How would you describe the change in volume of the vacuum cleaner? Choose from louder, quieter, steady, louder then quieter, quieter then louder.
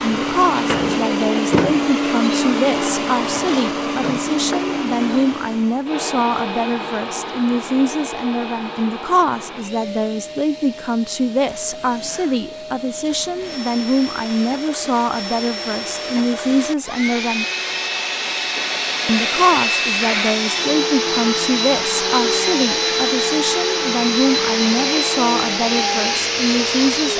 quieter then louder.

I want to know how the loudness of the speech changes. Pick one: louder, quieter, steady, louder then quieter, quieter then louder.
steady.